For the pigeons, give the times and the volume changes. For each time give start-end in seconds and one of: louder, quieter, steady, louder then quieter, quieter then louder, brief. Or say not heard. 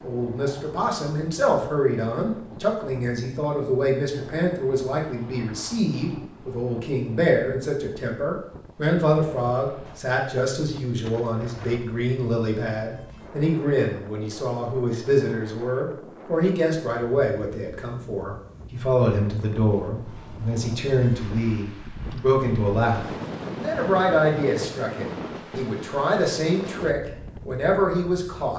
not heard.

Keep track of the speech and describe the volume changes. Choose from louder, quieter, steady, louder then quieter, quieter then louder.
steady.